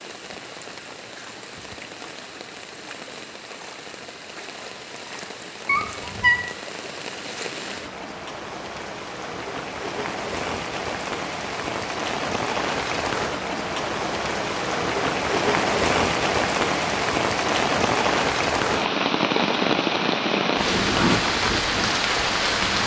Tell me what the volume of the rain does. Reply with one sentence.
The loudness of the rain goes up.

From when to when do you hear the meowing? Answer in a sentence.
You can hear the meowing from 5.7 to 6.4 s.